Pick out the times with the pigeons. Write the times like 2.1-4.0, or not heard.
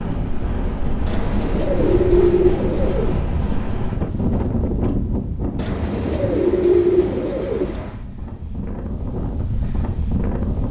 1.1-3.1, 5.5-8.1.